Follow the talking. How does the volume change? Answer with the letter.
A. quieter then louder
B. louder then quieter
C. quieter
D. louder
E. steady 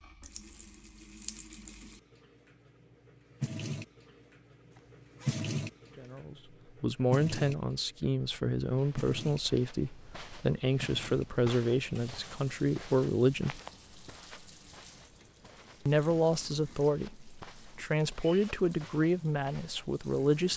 E.